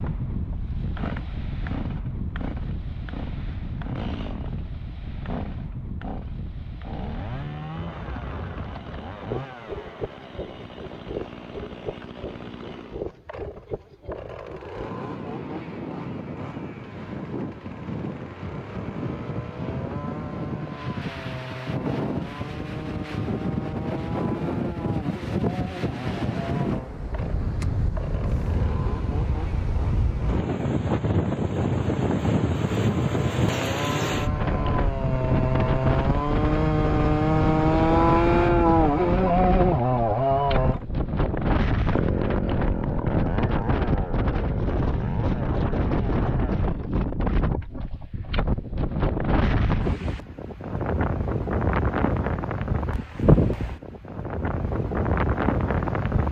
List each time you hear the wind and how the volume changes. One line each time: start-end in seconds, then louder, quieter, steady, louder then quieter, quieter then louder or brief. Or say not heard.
0.0-56.2 louder.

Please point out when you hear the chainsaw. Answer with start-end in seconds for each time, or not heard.
0.0-46.9.